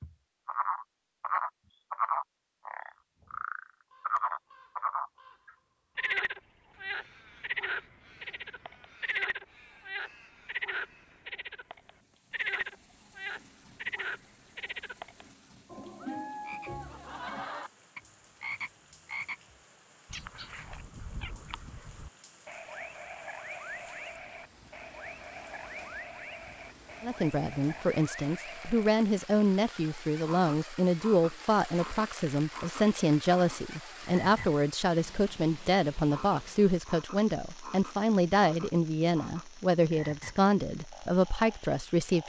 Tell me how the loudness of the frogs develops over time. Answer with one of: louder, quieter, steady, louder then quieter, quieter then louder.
quieter.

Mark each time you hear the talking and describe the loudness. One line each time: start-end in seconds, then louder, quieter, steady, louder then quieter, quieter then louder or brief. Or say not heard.
27.0-42.2 steady.